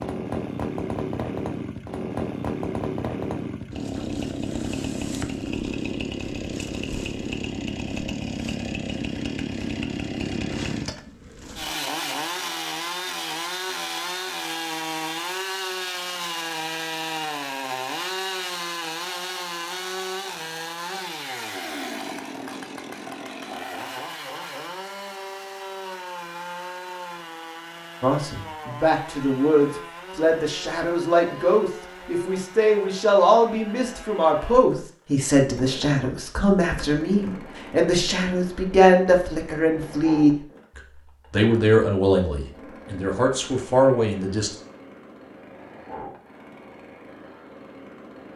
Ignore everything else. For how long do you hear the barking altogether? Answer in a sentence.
The barking can't be heard in this clip.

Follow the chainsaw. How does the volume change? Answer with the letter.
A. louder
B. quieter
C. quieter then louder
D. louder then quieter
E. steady
B.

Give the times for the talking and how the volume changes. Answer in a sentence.
The talking can be heard from 28.0 to 44.5 s, at a steady volume.